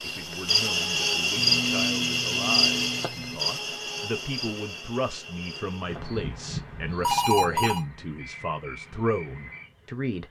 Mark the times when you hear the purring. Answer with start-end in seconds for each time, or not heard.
not heard.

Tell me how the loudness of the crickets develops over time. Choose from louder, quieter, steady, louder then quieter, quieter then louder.
quieter.